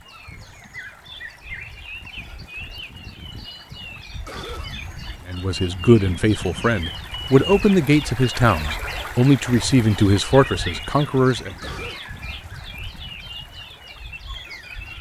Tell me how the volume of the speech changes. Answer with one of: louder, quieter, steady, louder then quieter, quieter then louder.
steady.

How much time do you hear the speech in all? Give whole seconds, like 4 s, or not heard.
6 s.